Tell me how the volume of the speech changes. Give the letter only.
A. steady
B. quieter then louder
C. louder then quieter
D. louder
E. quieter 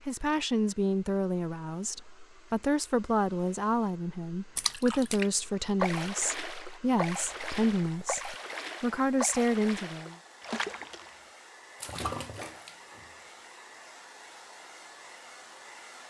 A.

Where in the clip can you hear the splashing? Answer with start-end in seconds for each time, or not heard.
4.5-11.1, 11.8-13.1.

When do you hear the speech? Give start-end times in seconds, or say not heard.
0.1-10.2.